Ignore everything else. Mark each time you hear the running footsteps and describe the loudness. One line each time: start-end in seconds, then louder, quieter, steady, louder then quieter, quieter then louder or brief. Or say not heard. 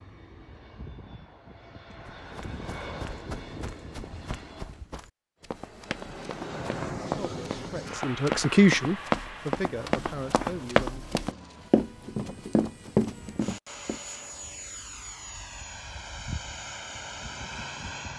2.0-14.0 louder.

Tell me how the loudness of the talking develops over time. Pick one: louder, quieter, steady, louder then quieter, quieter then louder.
louder then quieter.